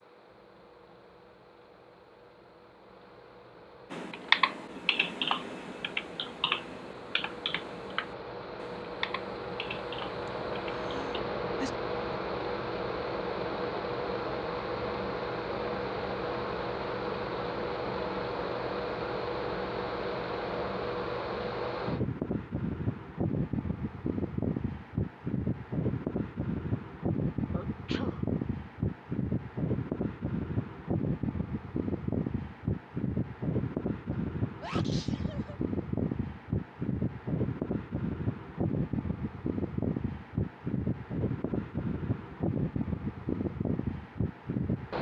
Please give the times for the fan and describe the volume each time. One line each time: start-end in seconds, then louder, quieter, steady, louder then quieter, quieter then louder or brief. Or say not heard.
0.0-44.9 louder.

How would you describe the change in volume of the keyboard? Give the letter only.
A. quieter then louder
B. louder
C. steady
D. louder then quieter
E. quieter
E.